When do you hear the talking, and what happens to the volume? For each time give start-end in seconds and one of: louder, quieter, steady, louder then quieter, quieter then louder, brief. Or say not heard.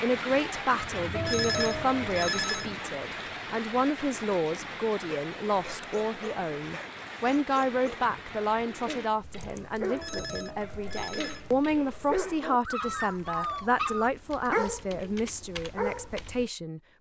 0.0-16.8 steady.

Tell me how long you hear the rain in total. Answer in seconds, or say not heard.
9 s.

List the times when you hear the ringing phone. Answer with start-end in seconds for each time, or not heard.
1.1-2.8, 9.8-11.5.